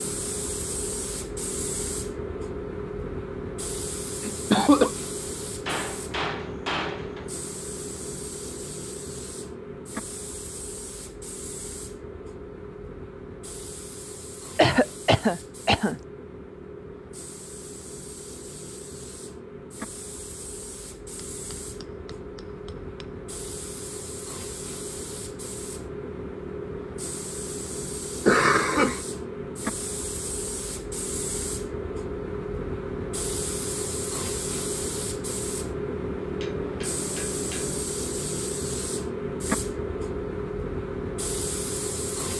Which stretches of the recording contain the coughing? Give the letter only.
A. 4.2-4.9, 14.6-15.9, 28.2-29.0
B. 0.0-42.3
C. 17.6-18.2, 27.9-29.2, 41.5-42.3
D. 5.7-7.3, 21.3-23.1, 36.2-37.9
A.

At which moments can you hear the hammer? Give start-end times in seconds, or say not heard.
5.7-7.3, 21.3-23.1, 36.2-37.9.